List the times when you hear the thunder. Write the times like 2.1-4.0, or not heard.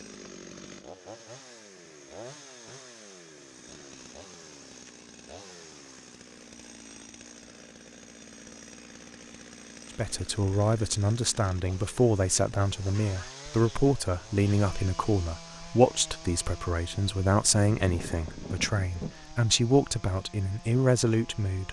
17.8-19.1.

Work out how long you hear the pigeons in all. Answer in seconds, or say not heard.
not heard.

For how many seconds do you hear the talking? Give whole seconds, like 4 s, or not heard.
12 s.